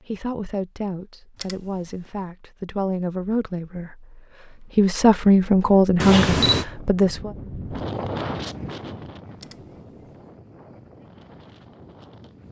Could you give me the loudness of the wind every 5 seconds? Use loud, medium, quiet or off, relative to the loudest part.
off, loud, quiet.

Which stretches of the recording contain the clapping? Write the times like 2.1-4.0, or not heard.
not heard.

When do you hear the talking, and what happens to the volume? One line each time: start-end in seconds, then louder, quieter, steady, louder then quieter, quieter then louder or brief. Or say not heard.
0.0-7.3 louder.